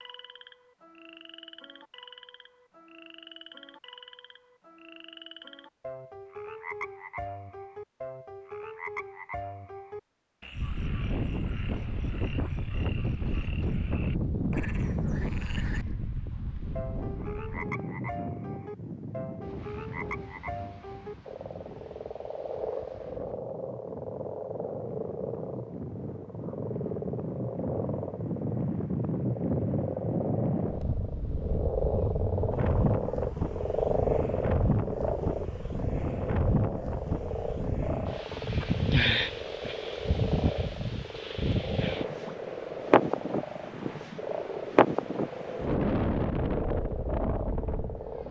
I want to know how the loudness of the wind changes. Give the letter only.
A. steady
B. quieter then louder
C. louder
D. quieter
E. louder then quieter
B.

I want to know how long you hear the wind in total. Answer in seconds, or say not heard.
38 s.